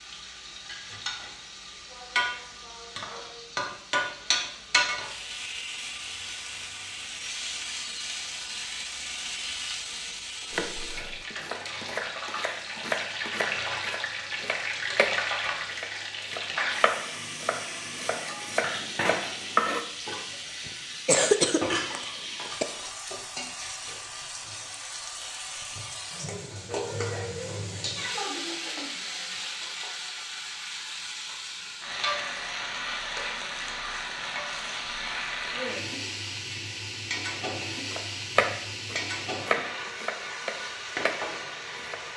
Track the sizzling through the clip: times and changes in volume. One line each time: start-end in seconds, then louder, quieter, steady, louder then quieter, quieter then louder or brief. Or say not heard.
0.0-42.1 steady.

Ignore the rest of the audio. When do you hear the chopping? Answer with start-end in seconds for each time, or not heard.
10.5-19.9, 37.9-42.0.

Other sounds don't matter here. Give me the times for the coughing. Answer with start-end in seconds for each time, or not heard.
20.6-22.6.